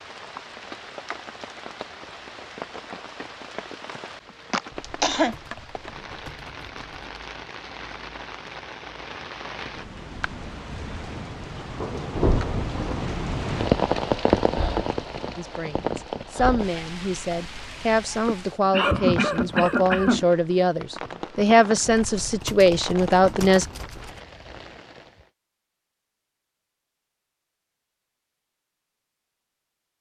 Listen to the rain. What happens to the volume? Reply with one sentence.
The loudness of the rain goes up, then down.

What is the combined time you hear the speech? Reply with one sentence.
The speech can be heard for 8 seconds in total.